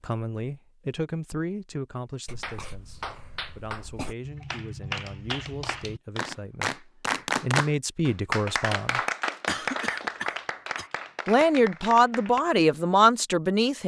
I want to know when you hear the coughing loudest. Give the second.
10 s.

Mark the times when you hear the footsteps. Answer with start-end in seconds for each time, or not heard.
not heard.